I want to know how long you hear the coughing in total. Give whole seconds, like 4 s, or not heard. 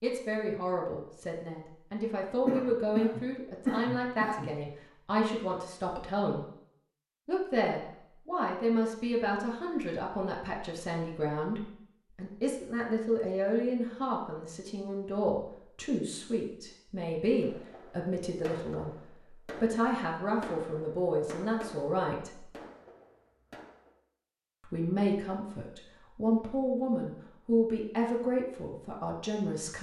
2 s.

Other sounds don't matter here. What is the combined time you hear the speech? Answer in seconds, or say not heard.
27 s.